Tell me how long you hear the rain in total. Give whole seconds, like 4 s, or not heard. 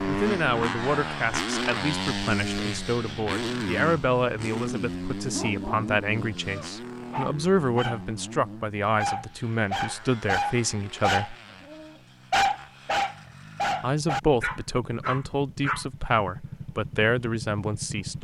not heard.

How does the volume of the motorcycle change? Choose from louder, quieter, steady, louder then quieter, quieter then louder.
quieter then louder.